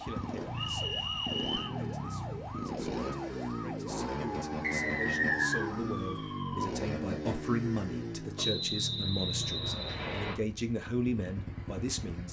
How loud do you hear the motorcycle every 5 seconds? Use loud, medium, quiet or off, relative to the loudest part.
loud, loud, medium.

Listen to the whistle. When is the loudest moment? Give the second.
5 s.